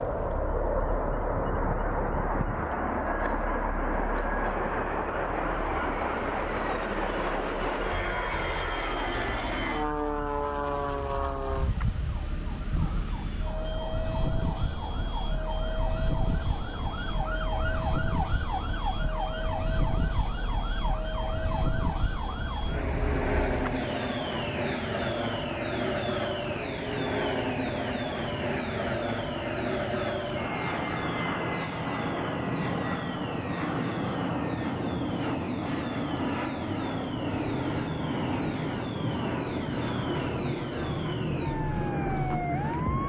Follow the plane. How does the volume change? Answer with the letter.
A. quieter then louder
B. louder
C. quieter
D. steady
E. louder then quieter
D.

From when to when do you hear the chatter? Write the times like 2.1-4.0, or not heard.
not heard.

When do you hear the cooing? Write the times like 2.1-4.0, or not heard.
not heard.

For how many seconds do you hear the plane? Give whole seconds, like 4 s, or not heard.
43 s.